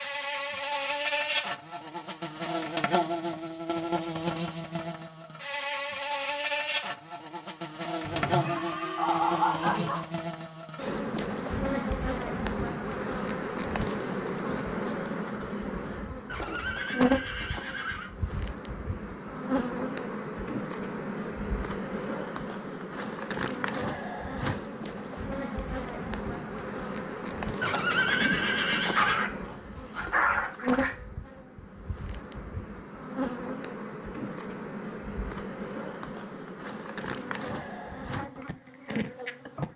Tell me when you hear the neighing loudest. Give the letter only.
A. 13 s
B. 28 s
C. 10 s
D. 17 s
B.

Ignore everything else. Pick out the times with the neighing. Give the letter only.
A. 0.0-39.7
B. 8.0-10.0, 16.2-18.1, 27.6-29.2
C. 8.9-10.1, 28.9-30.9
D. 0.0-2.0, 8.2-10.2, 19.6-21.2
B.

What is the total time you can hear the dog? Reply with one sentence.
You can hear the dog for 3 seconds altogether.